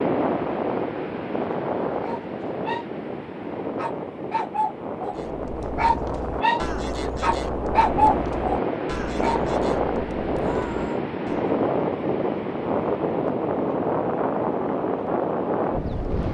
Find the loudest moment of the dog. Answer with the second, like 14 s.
8 s.